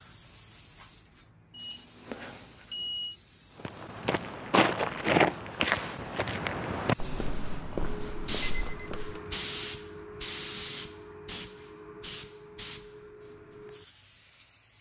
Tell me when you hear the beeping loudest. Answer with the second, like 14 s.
3 s.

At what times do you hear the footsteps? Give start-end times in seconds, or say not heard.
3.6-9.2.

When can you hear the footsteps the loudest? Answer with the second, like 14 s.
5 s.